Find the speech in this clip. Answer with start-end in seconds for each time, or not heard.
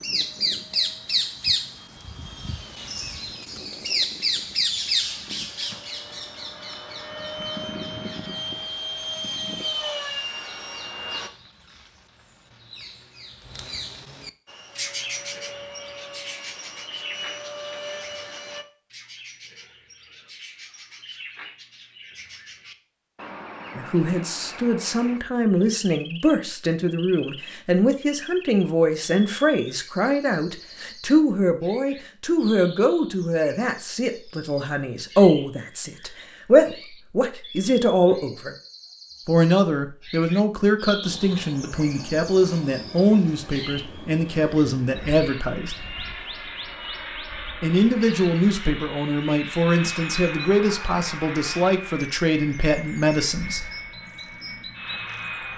23.8-38.5, 39.2-45.8, 47.6-53.7.